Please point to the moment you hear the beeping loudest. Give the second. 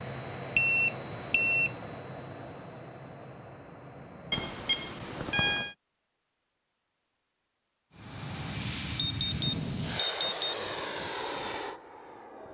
1 s.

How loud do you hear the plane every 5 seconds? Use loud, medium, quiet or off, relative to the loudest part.
medium, loud, loud.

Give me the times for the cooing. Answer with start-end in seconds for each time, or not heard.
not heard.